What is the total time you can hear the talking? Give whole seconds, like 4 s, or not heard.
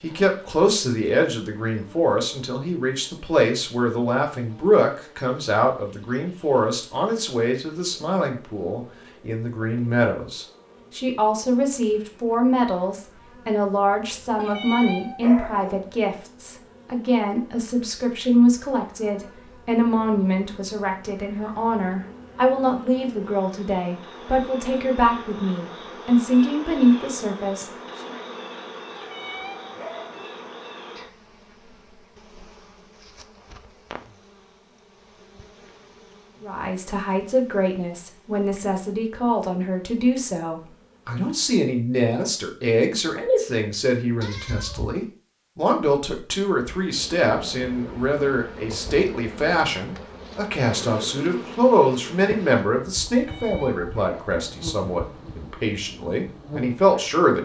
49 s.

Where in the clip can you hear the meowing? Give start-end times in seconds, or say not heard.
44.2-45.0.